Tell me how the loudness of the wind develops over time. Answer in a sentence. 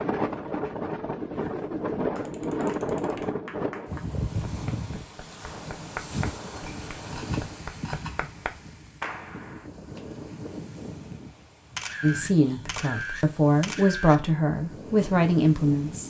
The volume of the wind goes down.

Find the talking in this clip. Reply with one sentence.
You can hear the talking from 12.0 to 16.0 s.